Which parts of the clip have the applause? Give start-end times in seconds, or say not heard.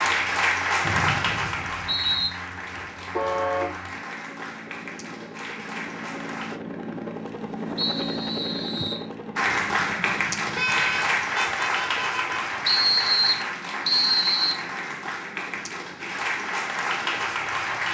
0.0-6.6, 9.3-17.8.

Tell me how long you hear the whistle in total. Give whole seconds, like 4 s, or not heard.
5 s.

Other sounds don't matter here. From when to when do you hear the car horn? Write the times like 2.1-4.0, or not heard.
3.1-3.8, 10.6-12.4.